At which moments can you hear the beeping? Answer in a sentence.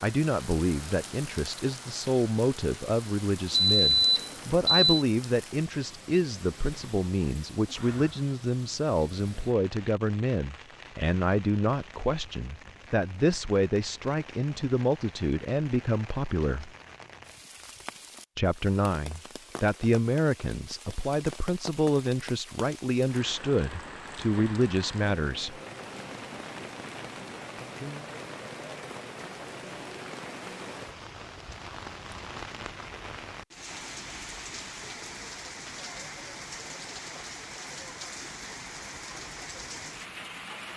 You can hear the beeping from 3.5 to 5.0 s.